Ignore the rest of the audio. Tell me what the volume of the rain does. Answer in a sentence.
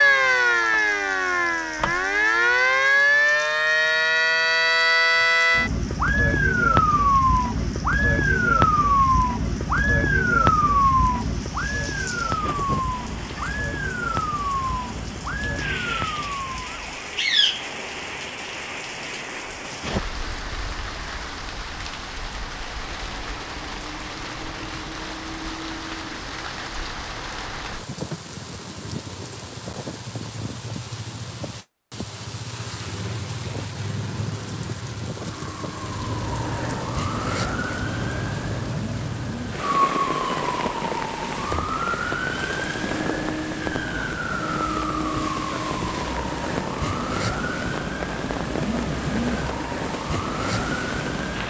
The volume of the rain goes up.